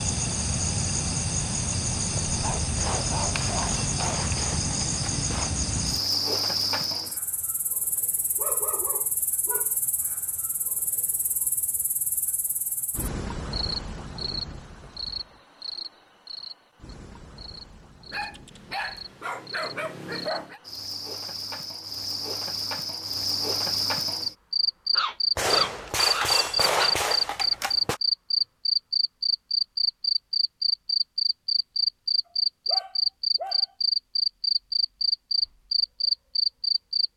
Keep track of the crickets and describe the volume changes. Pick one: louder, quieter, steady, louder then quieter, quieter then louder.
quieter then louder.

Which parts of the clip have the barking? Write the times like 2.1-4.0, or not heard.
2.4-4.2, 8.3-9.8, 18.1-20.6, 24.9-26.9, 32.6-33.6.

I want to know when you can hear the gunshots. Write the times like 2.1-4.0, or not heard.
2.8-5.5, 25.4-28.0.